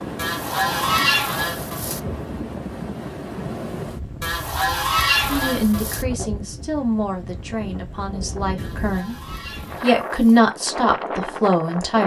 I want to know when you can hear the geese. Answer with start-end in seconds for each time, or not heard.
0.1-2.0, 4.2-6.0, 8.6-10.4.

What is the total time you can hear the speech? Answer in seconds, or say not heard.
7 s.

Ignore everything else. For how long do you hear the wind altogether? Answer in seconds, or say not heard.
12 s.